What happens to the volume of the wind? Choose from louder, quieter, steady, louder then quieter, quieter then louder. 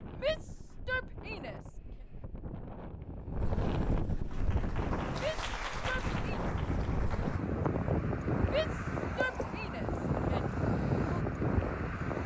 louder.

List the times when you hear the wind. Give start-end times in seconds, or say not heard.
0.0-12.2.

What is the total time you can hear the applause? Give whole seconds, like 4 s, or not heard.
3 s.